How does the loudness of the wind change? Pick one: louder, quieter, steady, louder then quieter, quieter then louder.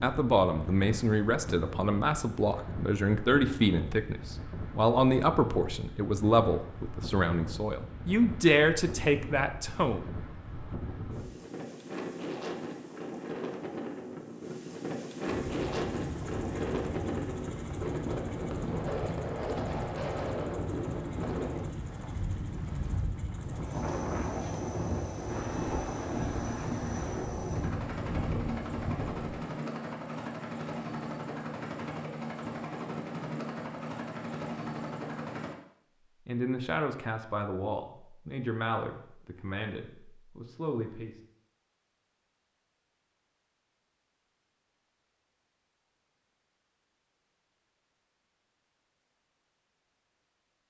louder.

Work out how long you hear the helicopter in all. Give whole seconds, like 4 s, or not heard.
20 s.